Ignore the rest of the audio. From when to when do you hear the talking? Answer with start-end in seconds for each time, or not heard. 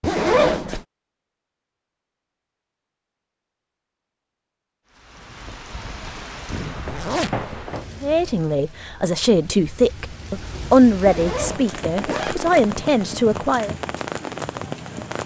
8.0-13.8.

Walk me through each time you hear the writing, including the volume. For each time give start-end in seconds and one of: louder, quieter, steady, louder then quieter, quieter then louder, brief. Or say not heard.
not heard.